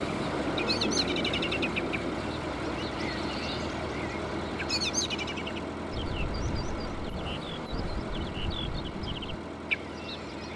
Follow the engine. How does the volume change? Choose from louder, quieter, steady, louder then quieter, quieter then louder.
quieter.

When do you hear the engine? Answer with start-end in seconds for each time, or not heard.
0.0-10.5.